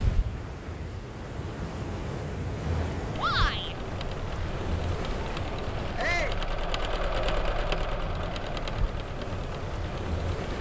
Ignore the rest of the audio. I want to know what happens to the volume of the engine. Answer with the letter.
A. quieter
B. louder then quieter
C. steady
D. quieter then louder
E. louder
B.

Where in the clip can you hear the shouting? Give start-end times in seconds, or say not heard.
3.1-3.8, 6.0-6.4.